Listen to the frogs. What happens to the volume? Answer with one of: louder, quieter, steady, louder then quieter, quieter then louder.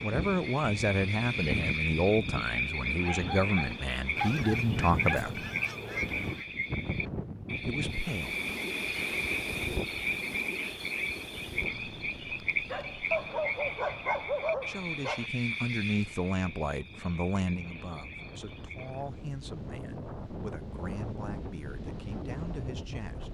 quieter.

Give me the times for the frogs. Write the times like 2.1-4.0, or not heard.
0.0-19.2.